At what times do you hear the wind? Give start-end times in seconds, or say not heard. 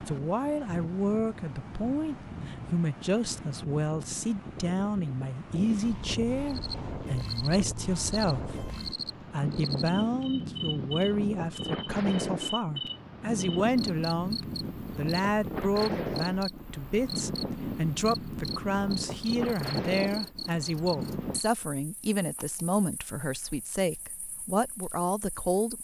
0.0-21.4.